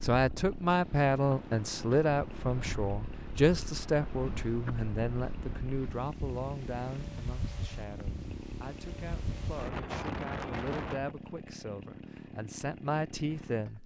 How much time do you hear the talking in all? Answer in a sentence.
The talking can be heard for 14 seconds in total.